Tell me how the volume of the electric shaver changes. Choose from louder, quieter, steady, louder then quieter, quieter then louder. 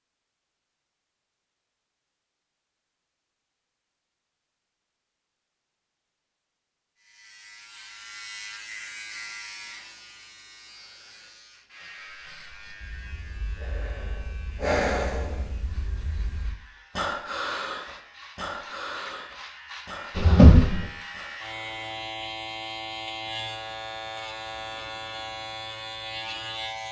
quieter then louder.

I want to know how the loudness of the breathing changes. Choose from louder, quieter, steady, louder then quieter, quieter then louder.
louder then quieter.